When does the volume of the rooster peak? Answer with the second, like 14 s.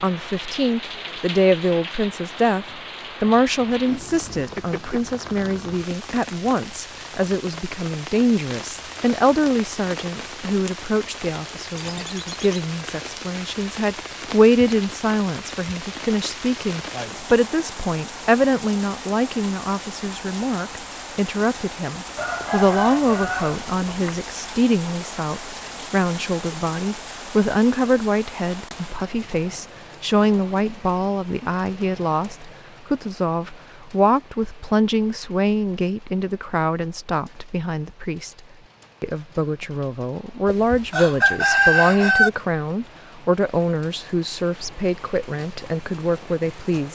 42 s.